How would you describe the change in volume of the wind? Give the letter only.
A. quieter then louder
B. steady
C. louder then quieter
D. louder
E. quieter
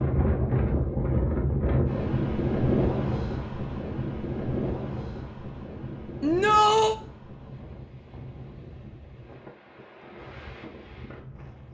E.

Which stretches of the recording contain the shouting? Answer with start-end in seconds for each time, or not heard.
6.2-7.0.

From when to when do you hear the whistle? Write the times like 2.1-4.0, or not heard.
not heard.